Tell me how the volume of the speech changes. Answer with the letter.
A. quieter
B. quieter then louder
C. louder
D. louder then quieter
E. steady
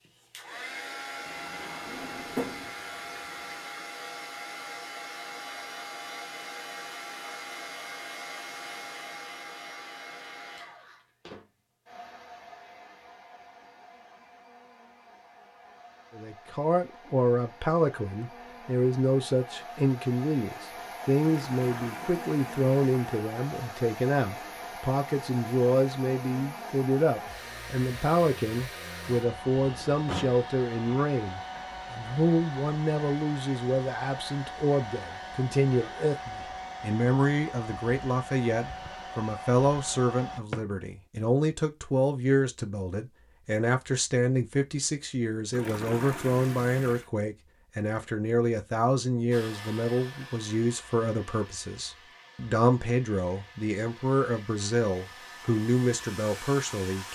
E.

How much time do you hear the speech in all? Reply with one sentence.
The speech can be heard for 41 seconds in total.